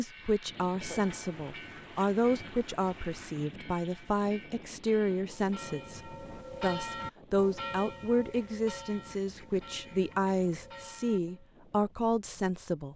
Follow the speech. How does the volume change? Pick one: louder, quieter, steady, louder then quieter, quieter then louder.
steady.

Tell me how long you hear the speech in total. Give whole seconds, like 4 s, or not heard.
13 s.